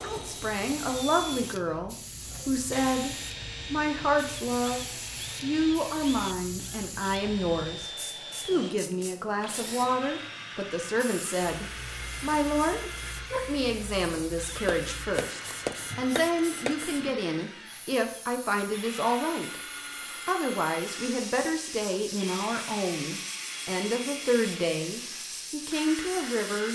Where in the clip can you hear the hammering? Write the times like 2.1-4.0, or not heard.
14.7-16.8.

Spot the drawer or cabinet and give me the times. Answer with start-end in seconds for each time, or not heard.
not heard.